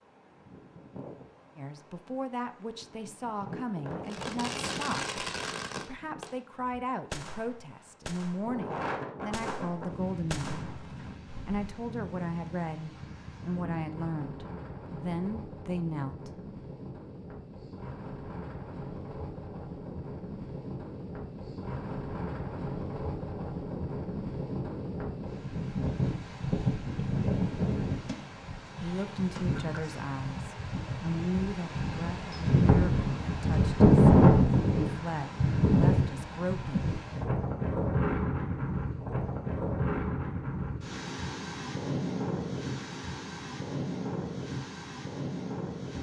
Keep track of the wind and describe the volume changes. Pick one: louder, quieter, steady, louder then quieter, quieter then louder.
louder then quieter.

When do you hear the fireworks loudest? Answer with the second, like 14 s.
5 s.